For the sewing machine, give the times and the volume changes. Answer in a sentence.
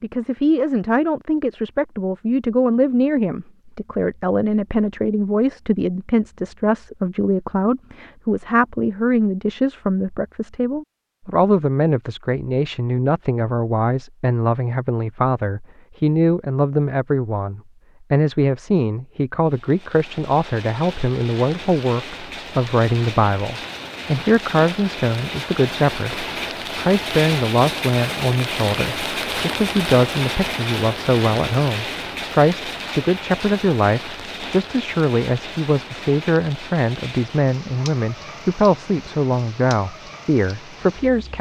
You can't hear the sewing machine here.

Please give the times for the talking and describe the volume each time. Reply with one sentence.
You can hear the talking from 0.0 to 41.3 s, at a steady volume.